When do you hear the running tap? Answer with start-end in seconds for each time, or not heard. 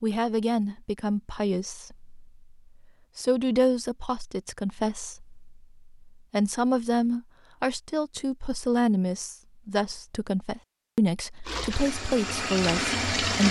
11.4-13.4.